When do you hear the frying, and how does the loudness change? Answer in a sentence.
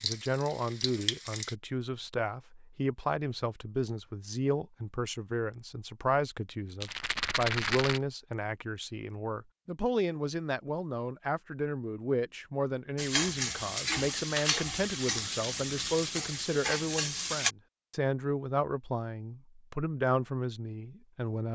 You can hear the frying briefly from 0.0 to 1.6 s; and from 12.9 to 17.6 s, at a steady volume.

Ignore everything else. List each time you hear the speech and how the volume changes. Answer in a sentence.
You can hear the speech from 0.0 to 21.5 s, at a steady volume.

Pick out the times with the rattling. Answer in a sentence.
You can hear the rattling from 6.8 to 8.0 s.